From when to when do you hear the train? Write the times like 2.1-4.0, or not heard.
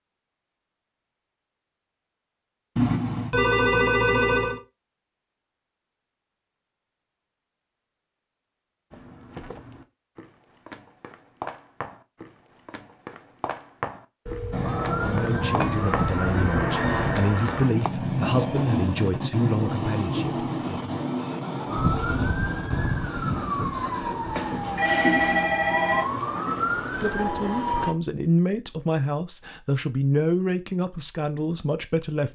14.5-27.9.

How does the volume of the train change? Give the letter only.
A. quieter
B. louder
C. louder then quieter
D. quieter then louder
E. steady
A.